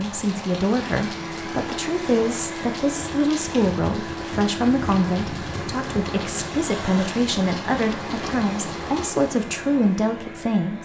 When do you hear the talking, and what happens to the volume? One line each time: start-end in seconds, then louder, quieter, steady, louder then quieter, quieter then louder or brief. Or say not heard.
0.0-10.8 steady.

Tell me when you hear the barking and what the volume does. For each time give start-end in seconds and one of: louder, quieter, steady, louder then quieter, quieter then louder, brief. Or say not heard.
not heard.